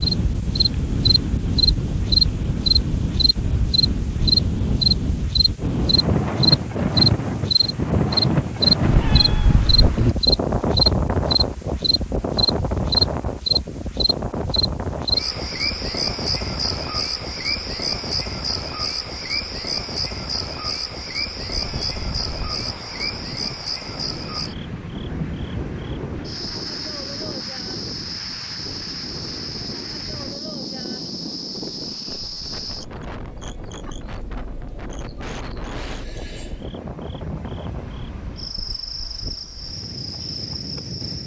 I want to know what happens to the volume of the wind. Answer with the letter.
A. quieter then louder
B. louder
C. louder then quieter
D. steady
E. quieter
E.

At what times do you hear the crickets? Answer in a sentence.
You can hear the crickets from 0.0 to 41.2 s.